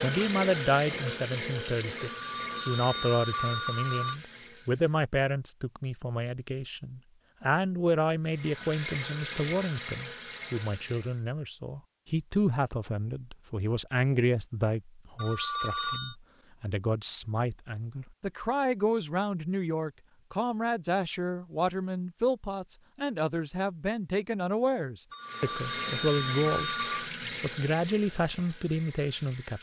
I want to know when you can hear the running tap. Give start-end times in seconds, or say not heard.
0.0-5.0, 8.2-11.2, 25.2-29.5.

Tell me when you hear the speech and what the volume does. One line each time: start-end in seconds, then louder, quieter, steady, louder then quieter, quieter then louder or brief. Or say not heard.
0.0-26.8 steady
27.4-29.5 brief.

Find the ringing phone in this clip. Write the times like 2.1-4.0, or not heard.
1.9-4.2, 15.2-16.1, 25.1-27.1.